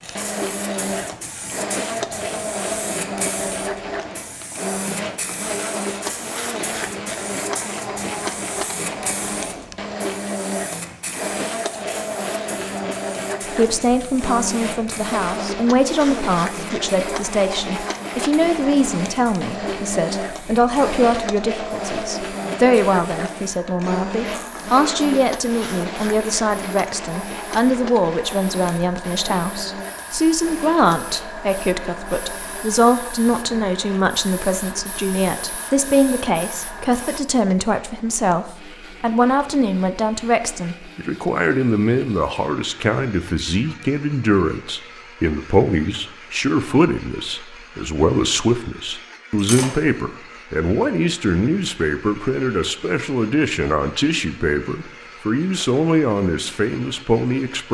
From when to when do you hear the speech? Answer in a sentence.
The speech can be heard from 13.5 to 57.6 s.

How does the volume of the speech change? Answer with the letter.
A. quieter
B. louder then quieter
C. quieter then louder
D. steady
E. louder
D.